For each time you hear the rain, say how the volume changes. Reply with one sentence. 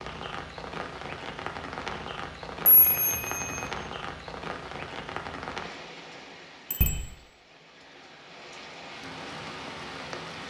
The rain can be heard from 0.0 to 10.4 s, getting quieter then louder.